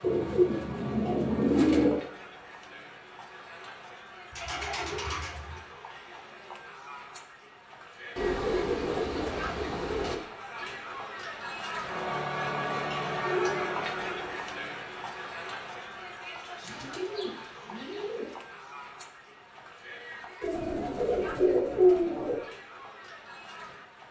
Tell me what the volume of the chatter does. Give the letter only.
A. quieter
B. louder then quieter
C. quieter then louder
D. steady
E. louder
B.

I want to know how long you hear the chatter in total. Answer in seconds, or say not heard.
24 s.